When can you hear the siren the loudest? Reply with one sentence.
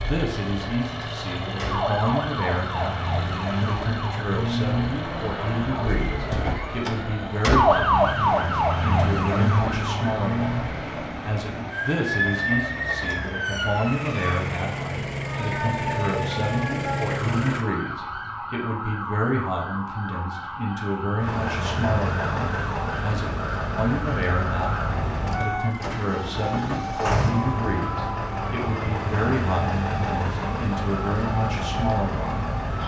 The volume of the siren peaks at 8 seconds.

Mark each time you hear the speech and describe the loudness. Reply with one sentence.
The speech can be heard from 0.0 to 32.5 s, at a steady volume.